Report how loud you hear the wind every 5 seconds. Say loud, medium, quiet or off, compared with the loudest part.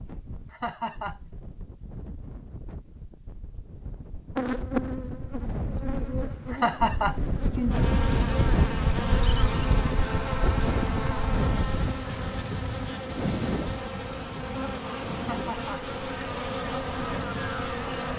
quiet, loud, loud, medium.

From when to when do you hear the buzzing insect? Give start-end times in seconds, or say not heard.
4.3-18.1.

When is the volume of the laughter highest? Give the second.
7 s.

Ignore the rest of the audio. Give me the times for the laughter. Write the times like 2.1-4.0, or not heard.
0.5-1.3, 6.5-7.3, 15.2-15.9.